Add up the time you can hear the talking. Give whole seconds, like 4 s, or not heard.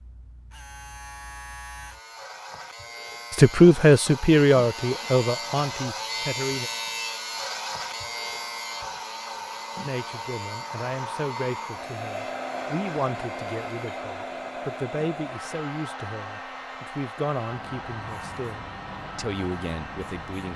14 s.